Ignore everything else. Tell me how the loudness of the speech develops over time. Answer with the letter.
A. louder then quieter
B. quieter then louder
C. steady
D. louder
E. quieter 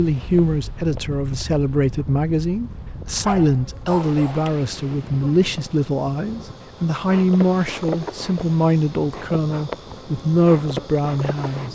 C.